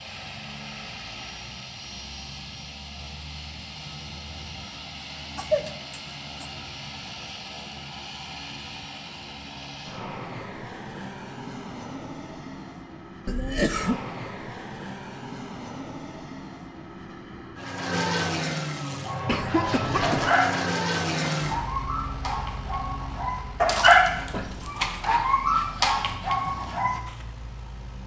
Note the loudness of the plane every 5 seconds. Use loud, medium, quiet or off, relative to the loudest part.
medium, medium, medium, loud, loud, quiet.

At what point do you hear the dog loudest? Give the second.
24 s.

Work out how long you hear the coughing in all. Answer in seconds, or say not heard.
3 s.